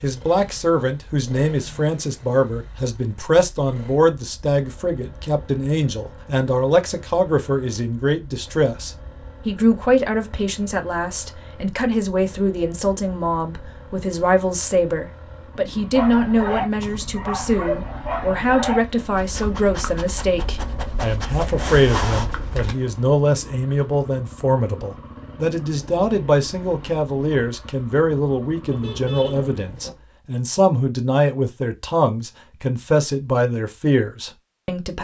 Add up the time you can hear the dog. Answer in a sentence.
You can hear the dog for 7 seconds altogether.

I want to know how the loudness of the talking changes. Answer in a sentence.
The volume of the talking stays about the same.